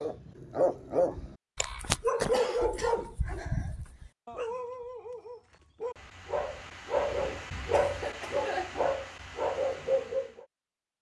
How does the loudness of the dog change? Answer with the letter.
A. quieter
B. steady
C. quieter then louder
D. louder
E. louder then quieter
C.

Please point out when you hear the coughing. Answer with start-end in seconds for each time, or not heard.
2.3-3.1, 7.7-8.9.